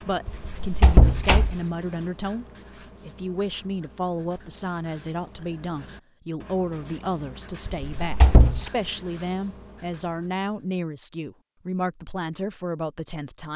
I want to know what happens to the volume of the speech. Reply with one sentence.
The loudness of the speech stays about the same.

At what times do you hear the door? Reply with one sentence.
The door can be heard from 0.2 to 1.6 s and from 7.7 to 8.7 s.